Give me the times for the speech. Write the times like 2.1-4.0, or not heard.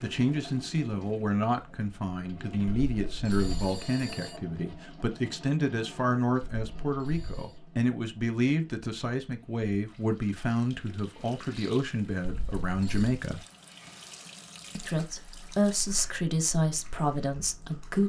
0.0-13.4, 14.8-18.0.